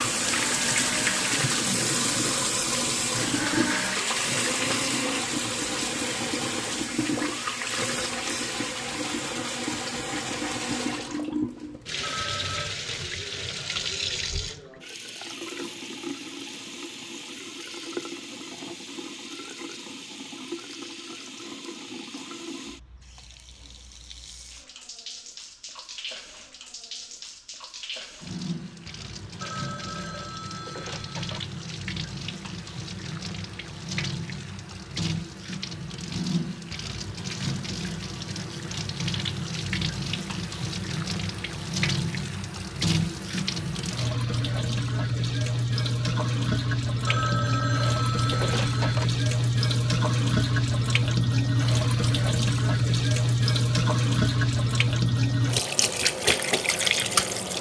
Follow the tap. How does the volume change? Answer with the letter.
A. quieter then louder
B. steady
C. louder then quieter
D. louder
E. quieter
A.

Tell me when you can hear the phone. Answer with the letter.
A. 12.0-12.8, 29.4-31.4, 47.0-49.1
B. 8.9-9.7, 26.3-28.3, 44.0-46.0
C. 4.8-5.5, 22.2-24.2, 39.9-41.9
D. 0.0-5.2
A.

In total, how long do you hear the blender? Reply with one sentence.
The blender can be heard for 5 seconds in total.